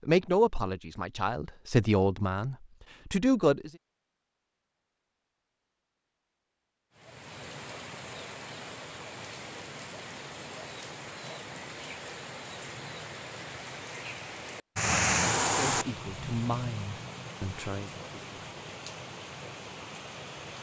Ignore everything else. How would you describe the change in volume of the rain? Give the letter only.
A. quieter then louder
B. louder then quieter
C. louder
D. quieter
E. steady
B.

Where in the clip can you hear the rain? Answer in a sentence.
The rain can be heard from 7.0 to 20.5 s.